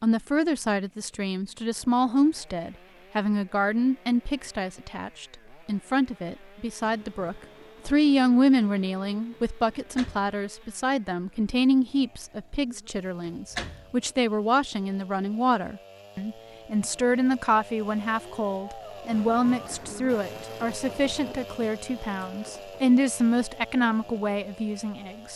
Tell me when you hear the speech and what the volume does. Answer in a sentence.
You can hear the speech from 0.0 to 25.3 s, at a steady volume.